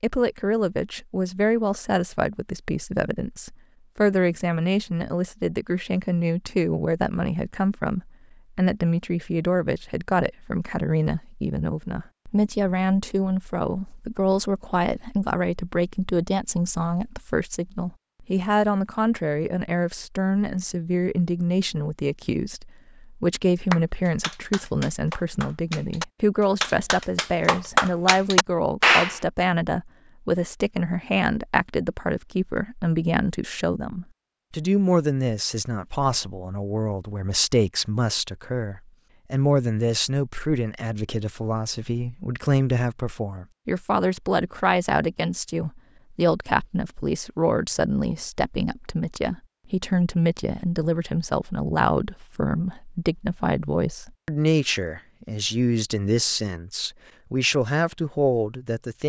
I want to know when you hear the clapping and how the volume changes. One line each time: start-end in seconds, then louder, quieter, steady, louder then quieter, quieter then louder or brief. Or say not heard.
23.7-29.1 louder.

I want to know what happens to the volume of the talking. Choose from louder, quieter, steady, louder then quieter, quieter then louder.
steady.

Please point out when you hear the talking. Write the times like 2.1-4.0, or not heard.
0.0-59.0.